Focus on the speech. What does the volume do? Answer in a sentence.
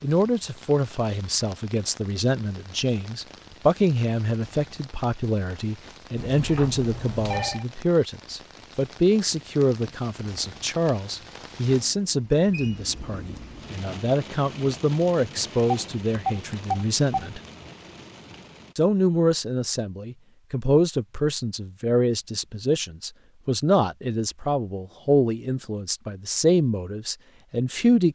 The volume of the speech stays about the same.